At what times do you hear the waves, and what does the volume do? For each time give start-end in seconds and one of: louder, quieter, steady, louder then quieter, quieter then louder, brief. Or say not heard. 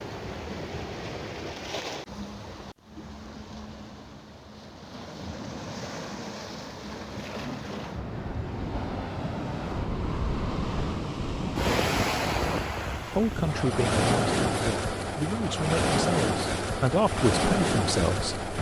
0.0-18.5 louder.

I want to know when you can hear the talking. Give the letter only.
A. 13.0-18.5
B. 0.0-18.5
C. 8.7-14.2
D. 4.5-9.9
A.